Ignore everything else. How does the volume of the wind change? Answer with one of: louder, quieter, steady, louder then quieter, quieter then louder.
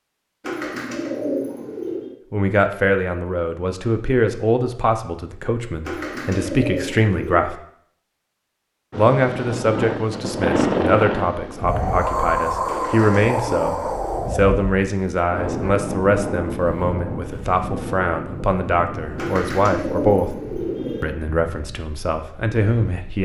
quieter.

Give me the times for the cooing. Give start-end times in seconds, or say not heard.
0.4-2.1, 5.8-7.5, 12.7-14.3, 19.1-21.1.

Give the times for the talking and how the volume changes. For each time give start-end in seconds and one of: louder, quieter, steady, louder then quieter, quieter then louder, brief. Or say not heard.
2.3-7.5 quieter then louder
8.9-20.4 steady
21.0-23.2 brief.